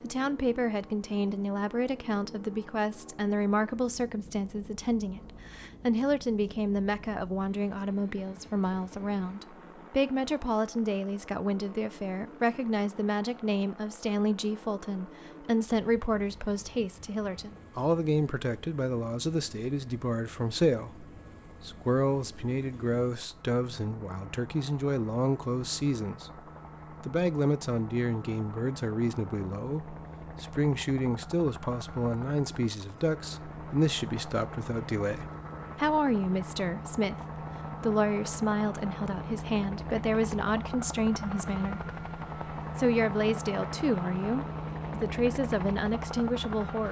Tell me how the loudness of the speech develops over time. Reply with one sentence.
The volume of the speech stays about the same.